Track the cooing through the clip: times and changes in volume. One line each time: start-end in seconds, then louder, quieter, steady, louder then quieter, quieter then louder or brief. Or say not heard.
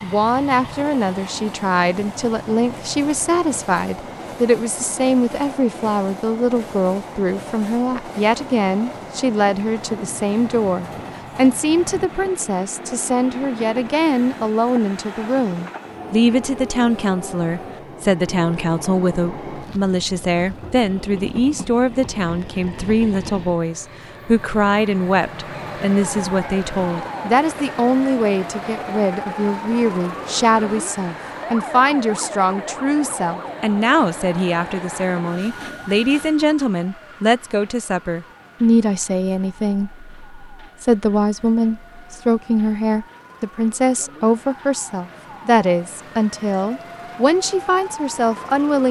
not heard.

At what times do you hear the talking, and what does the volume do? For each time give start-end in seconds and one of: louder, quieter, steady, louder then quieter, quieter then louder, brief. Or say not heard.
0.0-48.8 steady.